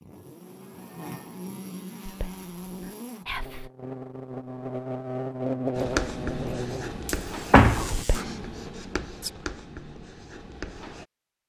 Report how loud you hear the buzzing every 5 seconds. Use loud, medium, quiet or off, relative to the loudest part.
medium, loud, off.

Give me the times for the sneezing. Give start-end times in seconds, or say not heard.
not heard.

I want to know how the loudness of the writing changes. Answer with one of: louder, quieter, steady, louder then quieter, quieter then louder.
quieter.